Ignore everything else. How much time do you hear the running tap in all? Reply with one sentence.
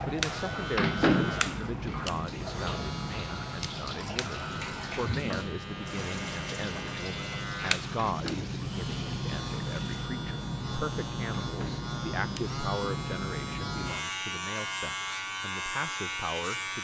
You can hear the running tap for 10 seconds altogether.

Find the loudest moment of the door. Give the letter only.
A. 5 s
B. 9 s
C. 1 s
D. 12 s
C.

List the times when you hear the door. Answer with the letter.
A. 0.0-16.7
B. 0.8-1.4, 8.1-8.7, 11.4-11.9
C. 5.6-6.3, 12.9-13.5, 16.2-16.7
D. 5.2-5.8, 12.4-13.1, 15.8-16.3
B.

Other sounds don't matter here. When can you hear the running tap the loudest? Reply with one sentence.
The loudest moment of the running tap is at 5 seconds.